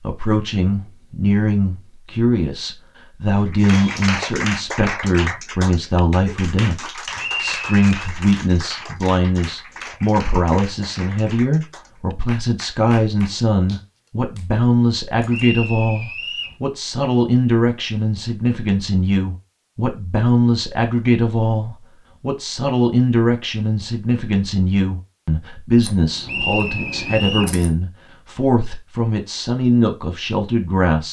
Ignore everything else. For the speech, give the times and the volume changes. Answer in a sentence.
You can hear the speech from 0.0 to 31.0 s, at a steady volume.